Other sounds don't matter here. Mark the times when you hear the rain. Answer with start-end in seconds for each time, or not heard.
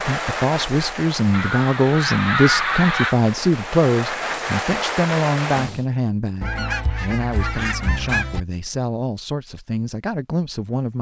0.0-5.8.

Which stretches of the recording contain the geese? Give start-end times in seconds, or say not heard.
1.3-3.1, 6.4-8.4.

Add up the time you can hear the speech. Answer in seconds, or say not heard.
11 s.